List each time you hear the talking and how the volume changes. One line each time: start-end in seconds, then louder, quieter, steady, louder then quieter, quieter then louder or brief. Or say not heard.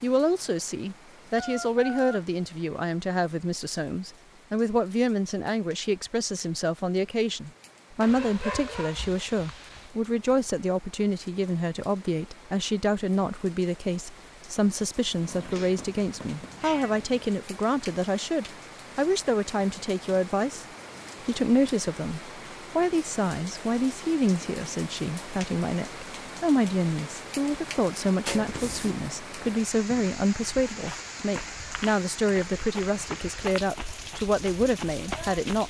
0.0-20.6 steady
21.2-35.6 steady.